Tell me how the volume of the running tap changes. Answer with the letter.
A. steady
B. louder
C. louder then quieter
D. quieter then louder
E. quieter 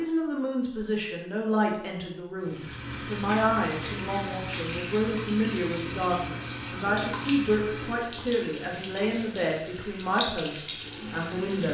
A.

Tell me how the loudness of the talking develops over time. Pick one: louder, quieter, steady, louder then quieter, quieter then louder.
steady.